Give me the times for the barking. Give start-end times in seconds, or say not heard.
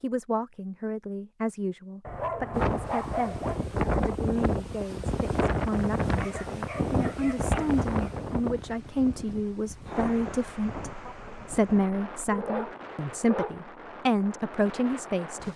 2.0-3.6, 6.2-8.1, 11.9-13.6.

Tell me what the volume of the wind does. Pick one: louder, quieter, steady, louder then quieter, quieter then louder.
quieter.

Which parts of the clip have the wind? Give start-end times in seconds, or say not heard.
2.5-15.5.